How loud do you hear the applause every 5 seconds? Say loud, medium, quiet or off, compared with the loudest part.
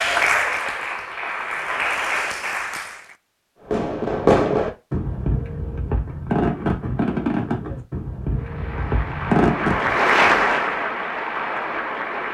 loud, medium, loud.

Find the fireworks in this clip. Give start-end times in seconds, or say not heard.
3.7-9.9.